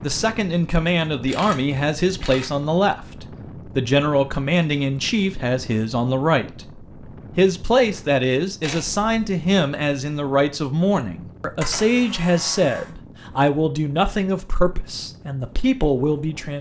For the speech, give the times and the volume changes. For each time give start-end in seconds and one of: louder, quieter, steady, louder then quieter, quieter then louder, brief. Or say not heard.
0.0-16.5 steady.